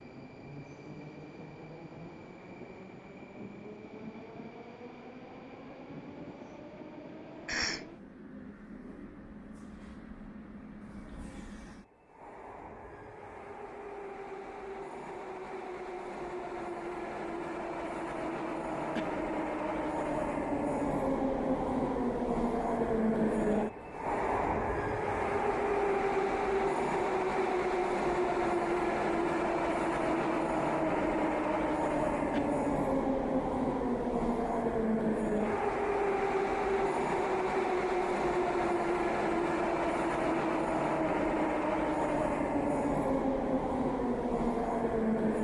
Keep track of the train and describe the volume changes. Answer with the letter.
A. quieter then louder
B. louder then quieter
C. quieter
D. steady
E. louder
E.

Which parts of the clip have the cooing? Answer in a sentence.
The cooing can't be heard in this clip.